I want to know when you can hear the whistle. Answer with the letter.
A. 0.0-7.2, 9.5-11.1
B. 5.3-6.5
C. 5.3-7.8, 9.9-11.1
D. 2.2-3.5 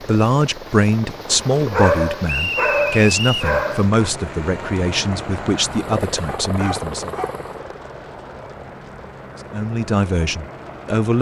D.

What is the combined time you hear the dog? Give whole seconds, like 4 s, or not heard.
4 s.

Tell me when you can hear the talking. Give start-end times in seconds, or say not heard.
0.0-7.2, 9.5-11.1.